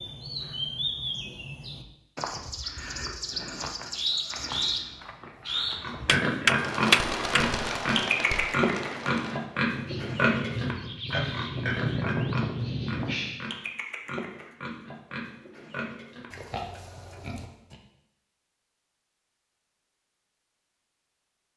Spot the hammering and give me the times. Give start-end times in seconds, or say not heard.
6.0-7.5.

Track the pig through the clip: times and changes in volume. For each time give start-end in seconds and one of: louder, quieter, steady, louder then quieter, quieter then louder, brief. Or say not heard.
5.8-17.8 quieter.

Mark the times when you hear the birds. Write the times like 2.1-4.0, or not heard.
0.0-13.4.